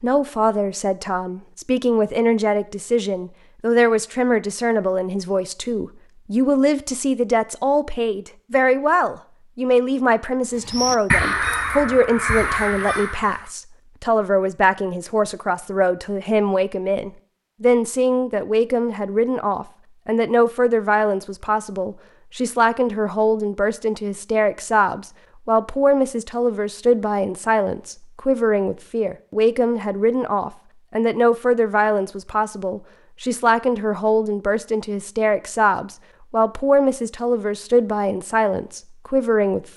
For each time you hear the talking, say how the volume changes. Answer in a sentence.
You can hear the talking from 0.0 to 39.6 s, at a steady volume.